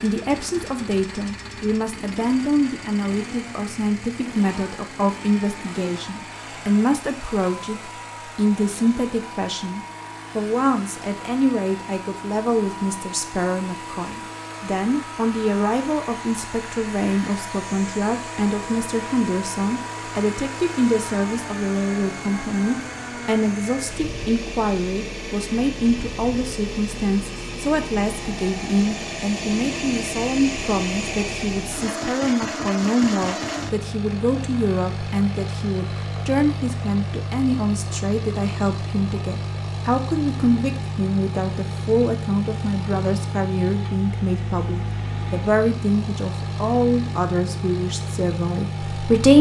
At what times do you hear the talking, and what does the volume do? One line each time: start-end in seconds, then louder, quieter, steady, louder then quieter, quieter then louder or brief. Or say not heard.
0.0-49.3 steady.